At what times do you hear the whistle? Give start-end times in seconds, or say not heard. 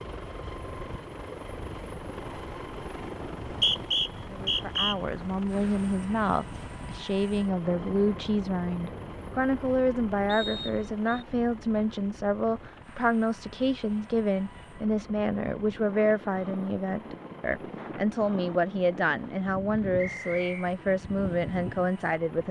3.5-5.0, 10.2-11.2, 19.9-20.8.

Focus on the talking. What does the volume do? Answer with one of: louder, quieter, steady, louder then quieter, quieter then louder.
steady.